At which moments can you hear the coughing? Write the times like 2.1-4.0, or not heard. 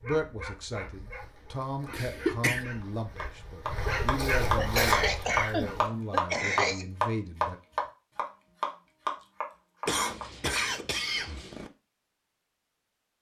1.9-2.6, 4.5-6.8, 9.8-11.7.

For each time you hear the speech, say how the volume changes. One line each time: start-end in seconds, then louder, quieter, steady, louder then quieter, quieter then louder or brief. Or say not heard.
0.0-7.6 steady.